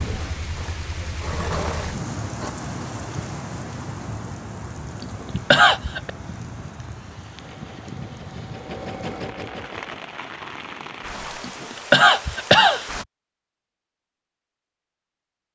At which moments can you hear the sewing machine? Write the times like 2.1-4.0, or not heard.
0.0-2.5, 7.3-10.1.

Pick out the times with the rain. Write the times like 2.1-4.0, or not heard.
0.0-13.1.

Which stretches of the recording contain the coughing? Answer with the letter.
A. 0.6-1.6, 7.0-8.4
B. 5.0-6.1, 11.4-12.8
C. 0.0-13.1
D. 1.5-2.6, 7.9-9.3
B.